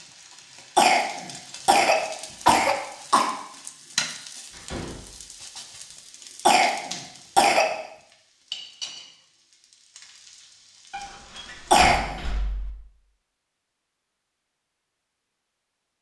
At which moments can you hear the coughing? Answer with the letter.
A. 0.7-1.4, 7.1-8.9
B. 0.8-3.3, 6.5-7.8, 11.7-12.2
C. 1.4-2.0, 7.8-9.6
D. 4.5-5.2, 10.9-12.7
B.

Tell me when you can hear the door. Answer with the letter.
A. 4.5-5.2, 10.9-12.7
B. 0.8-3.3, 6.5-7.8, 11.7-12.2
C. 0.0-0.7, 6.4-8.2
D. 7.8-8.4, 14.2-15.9
A.